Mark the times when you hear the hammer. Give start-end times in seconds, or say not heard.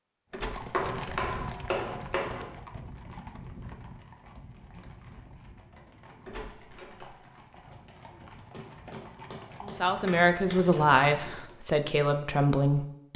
0.7-2.5, 8.5-10.6.